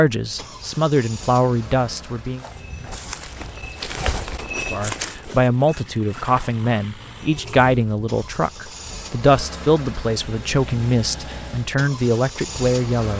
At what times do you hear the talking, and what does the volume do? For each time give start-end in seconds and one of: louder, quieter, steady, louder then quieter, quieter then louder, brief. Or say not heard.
0.0-2.5 brief
4.7-13.1 steady.